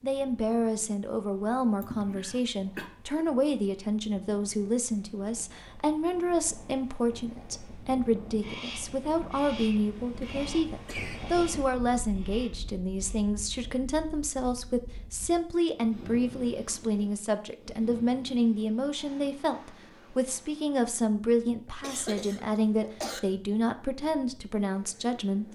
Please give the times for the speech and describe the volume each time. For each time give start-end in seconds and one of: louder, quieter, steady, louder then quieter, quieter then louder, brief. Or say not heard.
0.0-25.4 steady.